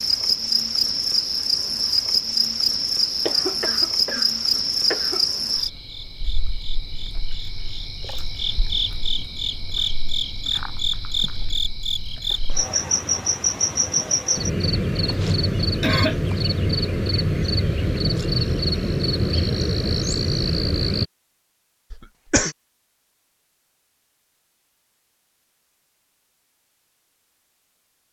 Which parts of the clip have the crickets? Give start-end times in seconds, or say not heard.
0.0-21.1.